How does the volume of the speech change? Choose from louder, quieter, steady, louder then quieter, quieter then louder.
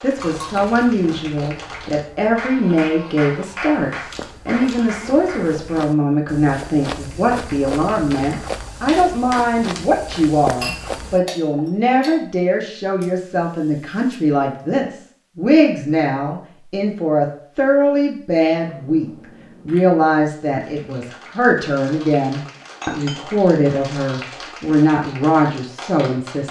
steady.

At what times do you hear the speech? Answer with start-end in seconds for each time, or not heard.
0.0-26.4.